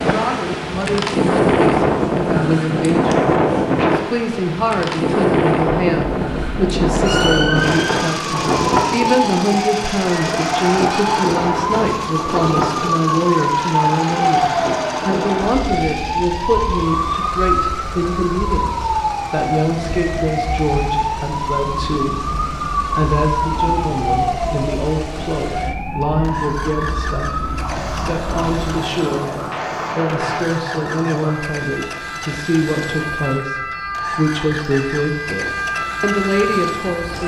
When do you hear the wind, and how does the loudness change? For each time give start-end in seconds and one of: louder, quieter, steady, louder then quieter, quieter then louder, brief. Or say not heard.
0.0-30.4 quieter.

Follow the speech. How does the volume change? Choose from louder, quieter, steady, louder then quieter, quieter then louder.
steady.